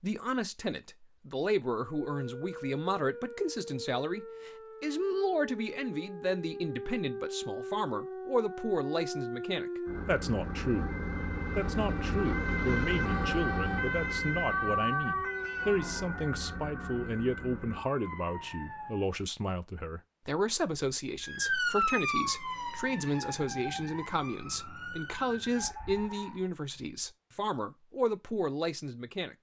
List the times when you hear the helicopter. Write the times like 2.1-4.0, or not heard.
not heard.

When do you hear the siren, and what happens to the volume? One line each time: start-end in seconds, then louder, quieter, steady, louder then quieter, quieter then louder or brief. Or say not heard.
1.8-19.1 louder then quieter
21.2-26.4 quieter.